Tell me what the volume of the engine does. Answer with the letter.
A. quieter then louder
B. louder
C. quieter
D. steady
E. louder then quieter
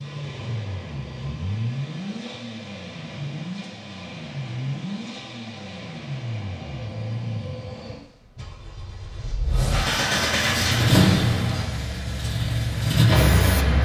B.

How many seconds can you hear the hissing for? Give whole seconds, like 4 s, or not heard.
3 s.